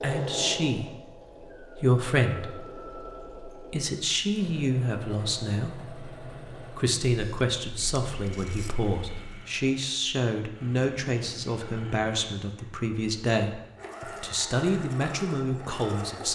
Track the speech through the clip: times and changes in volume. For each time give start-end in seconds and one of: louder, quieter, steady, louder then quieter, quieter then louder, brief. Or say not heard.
0.0-16.3 steady.